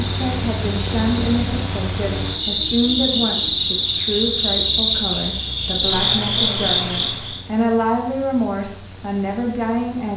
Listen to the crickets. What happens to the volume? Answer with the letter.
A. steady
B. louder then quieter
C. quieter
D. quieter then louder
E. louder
E.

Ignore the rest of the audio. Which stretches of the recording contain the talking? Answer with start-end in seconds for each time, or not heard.
0.0-10.1.